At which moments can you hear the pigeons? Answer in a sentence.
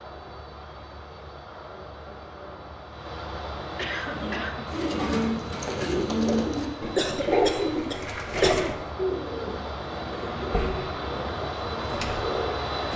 You can hear the pigeons from 4.0 to 12.9 s.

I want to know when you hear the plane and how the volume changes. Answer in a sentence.
The plane can be heard from 0.0 to 12.9 s, getting louder.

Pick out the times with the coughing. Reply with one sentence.
The coughing can be heard from 3.8 to 4.7 s and from 7.0 to 8.8 s.